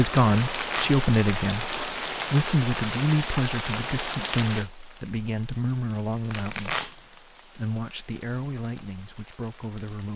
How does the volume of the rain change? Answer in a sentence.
The loudness of the rain goes down.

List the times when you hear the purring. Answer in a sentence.
You can't hear the purring here.